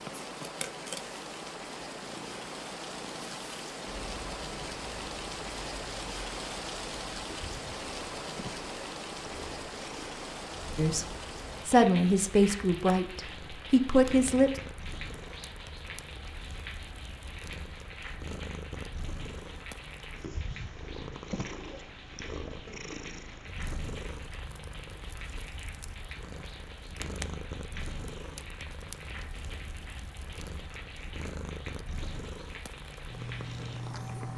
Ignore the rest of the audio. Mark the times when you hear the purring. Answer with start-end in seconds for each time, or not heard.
0.0-34.3.